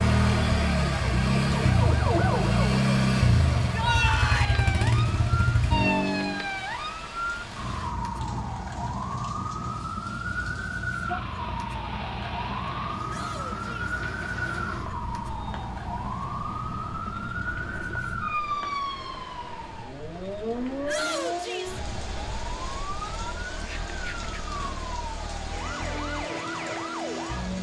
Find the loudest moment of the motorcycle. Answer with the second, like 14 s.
3 s.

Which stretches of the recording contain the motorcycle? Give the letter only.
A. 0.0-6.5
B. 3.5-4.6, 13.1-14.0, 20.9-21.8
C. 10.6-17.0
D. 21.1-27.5
A.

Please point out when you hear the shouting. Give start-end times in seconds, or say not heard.
3.5-4.6, 13.1-14.0, 20.9-21.8.